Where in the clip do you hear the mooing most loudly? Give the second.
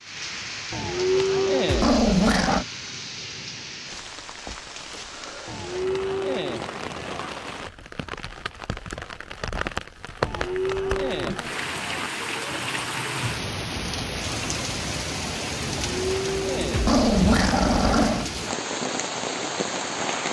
1 s.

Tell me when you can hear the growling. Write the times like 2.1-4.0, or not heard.
1.6-2.6, 16.7-18.3.